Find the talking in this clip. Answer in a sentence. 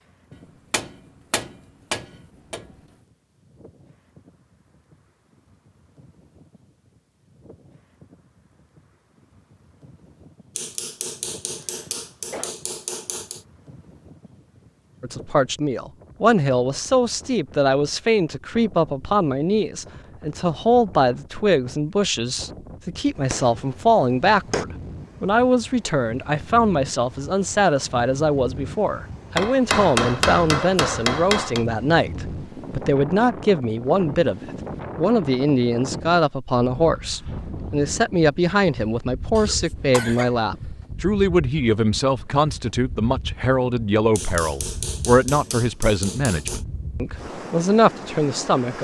You can hear the talking from 15.0 to 48.7 s.